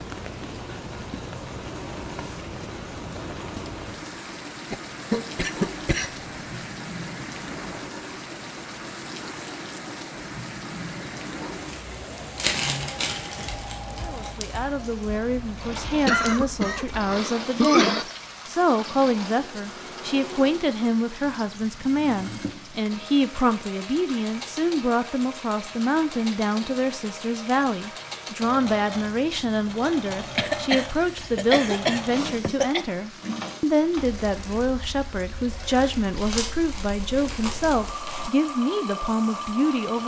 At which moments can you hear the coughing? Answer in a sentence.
You can hear the coughing from 4.7 to 6.5 s, from 16.1 to 18.1 s and from 30.1 to 32.9 s.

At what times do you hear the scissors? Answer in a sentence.
You can't hear the scissors here.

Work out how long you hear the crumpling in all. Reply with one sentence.
You can hear the crumpling for 4 seconds altogether.